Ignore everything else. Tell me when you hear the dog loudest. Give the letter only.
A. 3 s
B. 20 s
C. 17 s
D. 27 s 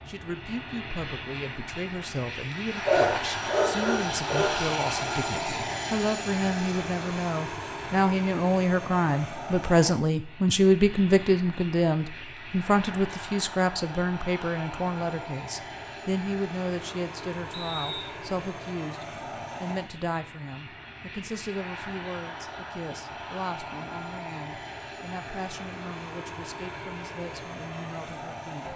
A.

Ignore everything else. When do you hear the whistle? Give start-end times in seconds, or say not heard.
17.5-18.1.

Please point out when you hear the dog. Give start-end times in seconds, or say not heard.
2.9-4.6.